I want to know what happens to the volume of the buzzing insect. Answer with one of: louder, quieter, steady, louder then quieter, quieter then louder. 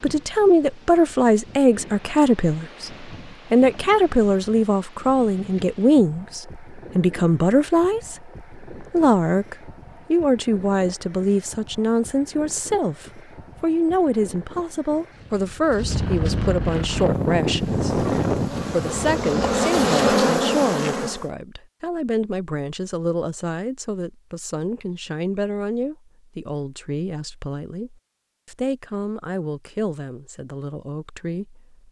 louder.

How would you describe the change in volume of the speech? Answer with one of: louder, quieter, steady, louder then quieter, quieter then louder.
quieter.